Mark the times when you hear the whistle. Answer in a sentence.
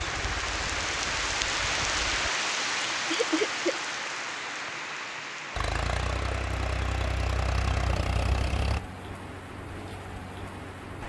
The whistle can't be heard in this clip.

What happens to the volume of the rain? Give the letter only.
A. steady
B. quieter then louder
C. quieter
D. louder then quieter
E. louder
C.